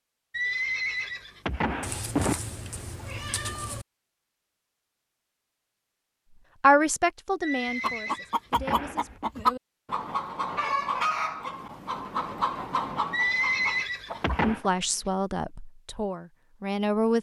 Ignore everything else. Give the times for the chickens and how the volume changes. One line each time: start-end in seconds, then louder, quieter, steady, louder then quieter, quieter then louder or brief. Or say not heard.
7.8-15.1 quieter.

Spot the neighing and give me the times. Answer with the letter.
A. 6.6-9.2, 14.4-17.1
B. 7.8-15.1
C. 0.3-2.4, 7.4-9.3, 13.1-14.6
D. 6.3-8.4
C.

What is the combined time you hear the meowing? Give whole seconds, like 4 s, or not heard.
2 s.